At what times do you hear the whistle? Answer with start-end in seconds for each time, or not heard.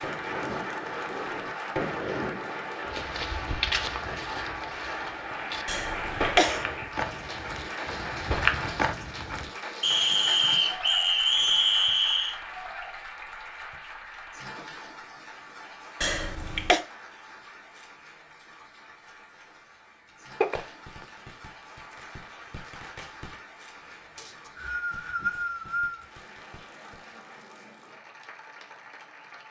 9.8-12.4, 24.1-26.1.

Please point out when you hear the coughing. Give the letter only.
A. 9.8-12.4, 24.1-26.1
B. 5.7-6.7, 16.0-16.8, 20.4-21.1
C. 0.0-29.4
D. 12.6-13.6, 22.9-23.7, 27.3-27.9
B.